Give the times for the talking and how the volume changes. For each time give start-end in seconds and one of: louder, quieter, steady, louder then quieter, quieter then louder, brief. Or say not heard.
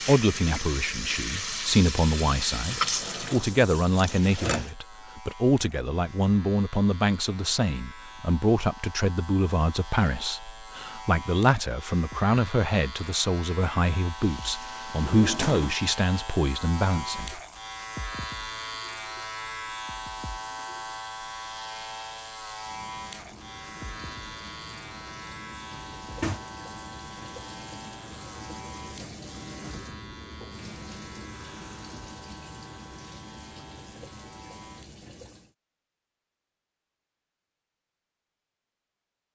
0.1-17.4 steady.